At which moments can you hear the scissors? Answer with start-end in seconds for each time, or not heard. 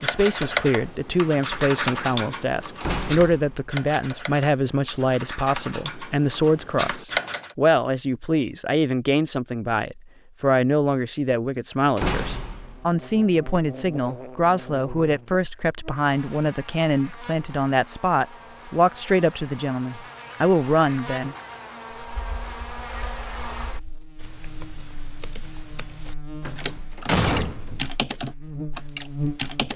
not heard.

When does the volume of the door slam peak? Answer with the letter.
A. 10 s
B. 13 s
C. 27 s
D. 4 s
C.